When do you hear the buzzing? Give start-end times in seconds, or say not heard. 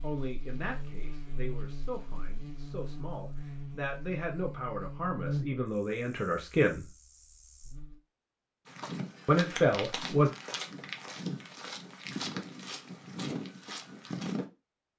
0.0-8.0.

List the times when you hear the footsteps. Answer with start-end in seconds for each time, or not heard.
8.7-14.4.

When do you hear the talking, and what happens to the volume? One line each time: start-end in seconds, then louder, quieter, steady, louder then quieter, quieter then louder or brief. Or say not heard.
0.0-6.9 louder
9.2-10.3 brief.